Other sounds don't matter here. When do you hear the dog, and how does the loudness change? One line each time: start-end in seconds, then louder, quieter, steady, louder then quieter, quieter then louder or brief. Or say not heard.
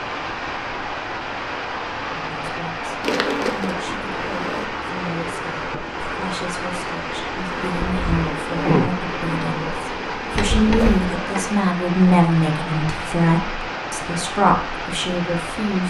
not heard.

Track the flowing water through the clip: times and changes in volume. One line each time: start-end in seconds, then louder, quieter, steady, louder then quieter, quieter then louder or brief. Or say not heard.
0.0-15.8 steady.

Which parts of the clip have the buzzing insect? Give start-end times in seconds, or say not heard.
3.0-4.7, 7.5-11.4.